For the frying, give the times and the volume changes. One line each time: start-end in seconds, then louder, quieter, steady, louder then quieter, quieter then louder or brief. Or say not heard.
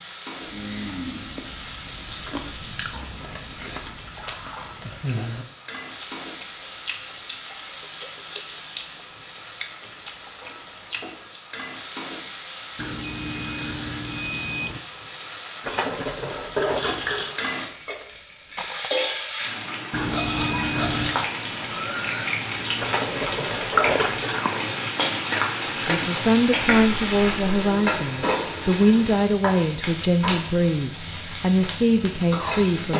0.0-32.9 louder.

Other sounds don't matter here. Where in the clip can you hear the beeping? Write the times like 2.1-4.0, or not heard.
12.8-14.8, 19.9-21.1.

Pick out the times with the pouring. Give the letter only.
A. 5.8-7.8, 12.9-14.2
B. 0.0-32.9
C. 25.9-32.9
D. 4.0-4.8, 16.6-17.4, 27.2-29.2
D.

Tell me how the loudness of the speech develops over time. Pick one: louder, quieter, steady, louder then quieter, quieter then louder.
steady.